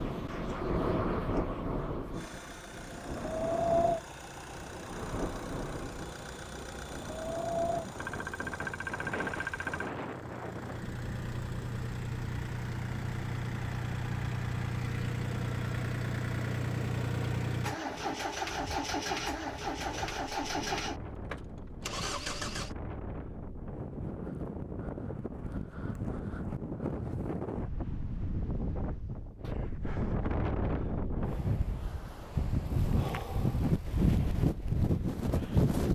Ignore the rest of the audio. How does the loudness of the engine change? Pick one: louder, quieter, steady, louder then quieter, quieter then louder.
louder.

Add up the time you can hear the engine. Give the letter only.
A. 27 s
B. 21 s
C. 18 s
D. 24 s
B.